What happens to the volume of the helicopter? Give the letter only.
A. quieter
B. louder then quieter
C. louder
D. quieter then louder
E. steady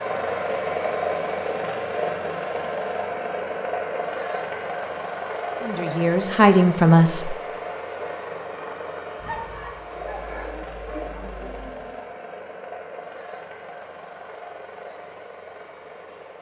A.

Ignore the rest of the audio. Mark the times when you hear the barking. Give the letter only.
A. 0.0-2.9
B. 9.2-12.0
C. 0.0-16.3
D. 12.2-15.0
B.